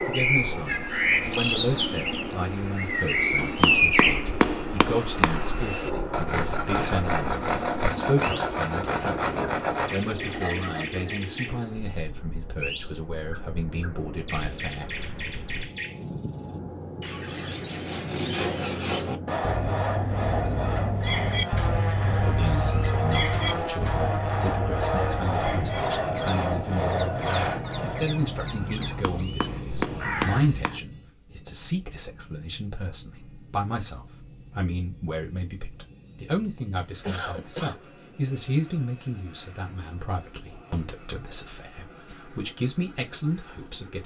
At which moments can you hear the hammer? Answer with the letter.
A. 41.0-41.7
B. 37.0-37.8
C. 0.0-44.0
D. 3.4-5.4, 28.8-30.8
D.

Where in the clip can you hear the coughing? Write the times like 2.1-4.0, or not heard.
37.0-37.8.